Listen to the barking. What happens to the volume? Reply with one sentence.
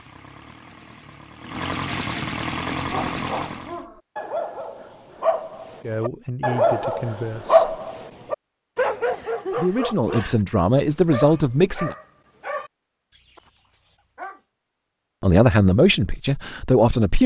The loudness of the barking goes up, then down.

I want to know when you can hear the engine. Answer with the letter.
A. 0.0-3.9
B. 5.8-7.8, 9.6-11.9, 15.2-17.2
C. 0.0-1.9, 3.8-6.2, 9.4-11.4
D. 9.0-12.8
A.